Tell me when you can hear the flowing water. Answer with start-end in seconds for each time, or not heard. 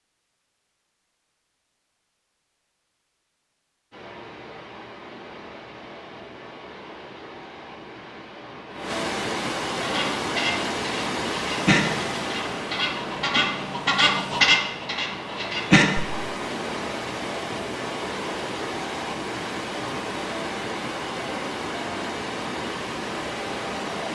3.9-24.1.